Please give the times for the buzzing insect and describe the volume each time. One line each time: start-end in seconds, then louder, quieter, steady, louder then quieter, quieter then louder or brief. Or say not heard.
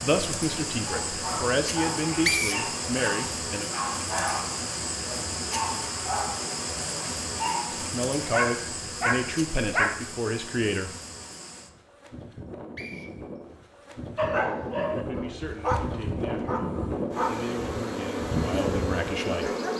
0.0-19.7 quieter then louder.